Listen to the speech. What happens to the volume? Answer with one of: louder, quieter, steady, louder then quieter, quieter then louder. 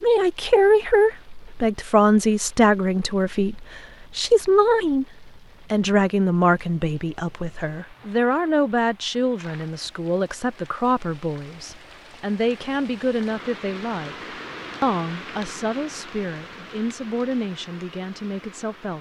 quieter.